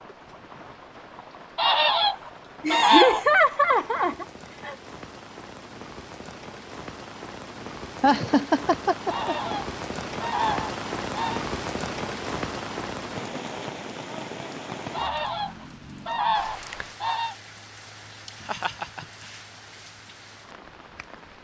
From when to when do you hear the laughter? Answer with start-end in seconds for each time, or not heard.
2.6-4.8, 8.0-9.6, 18.2-19.1.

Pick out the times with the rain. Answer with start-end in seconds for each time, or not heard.
0.0-21.3.